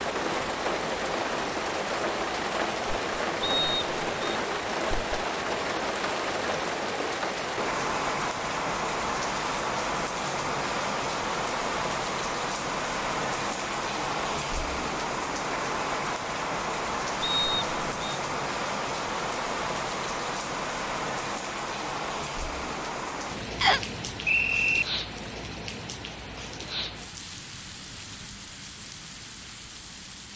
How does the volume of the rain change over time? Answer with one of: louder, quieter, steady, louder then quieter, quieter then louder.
quieter.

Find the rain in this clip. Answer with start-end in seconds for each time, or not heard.
0.0-30.3.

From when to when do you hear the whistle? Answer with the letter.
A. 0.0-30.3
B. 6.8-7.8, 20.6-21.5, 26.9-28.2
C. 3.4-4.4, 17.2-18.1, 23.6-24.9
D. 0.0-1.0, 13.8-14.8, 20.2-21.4
C.